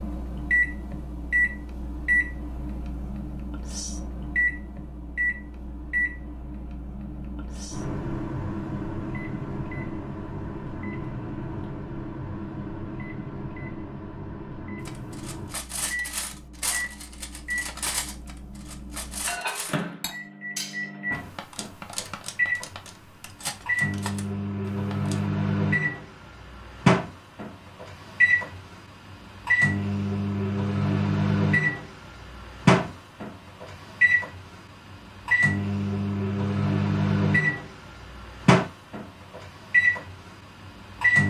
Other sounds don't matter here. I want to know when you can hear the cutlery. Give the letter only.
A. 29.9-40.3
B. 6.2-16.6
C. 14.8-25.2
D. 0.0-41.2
C.